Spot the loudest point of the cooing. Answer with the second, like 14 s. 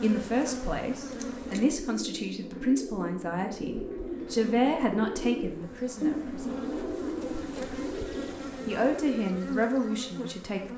6 s.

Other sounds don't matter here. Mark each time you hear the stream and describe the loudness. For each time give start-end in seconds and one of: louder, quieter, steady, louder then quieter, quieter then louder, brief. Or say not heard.
not heard.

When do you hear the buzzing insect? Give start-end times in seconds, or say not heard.
0.0-1.7, 3.6-10.7.